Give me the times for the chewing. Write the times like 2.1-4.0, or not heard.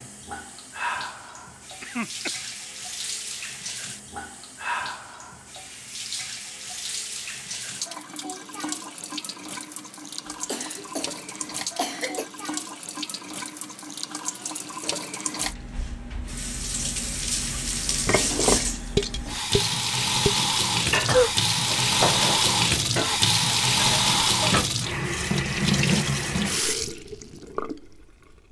not heard.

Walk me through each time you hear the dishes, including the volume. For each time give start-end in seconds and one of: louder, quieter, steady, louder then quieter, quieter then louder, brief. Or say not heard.
18.1-24.7 quieter.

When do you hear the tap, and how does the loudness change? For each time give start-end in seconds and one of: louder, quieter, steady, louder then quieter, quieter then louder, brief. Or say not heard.
0.0-28.4 louder.